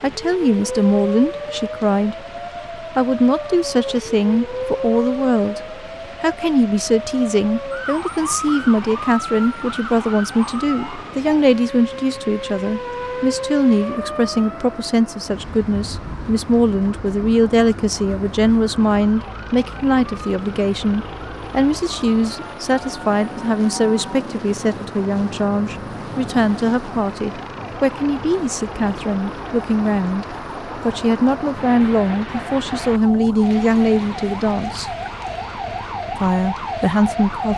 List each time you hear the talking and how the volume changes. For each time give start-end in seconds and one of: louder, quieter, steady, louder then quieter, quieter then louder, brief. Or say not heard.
0.0-34.9 steady
36.1-37.5 brief.